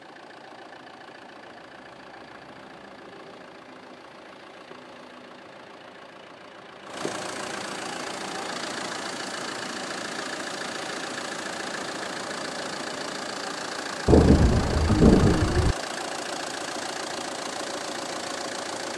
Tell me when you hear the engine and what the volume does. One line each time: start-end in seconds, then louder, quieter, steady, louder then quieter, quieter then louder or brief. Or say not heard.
0.0-18.9 louder.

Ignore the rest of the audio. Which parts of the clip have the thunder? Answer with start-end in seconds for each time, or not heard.
14.1-15.8.